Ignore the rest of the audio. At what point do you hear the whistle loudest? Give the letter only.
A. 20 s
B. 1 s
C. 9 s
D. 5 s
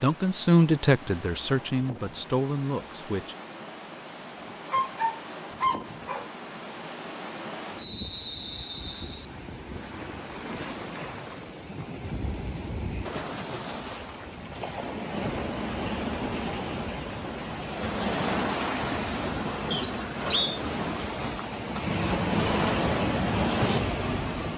A.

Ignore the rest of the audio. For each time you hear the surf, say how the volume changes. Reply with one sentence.
You can hear the surf from 0.0 to 24.5 s, getting louder.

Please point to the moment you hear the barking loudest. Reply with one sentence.
The volume of the barking peaks at 5 seconds.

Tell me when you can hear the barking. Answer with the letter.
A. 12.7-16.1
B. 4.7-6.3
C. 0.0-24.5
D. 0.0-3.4
B.